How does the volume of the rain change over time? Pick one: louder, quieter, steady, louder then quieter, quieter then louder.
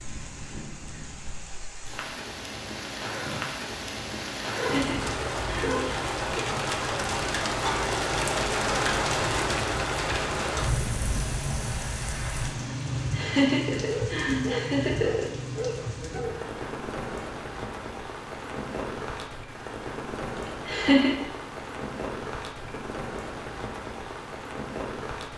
louder then quieter.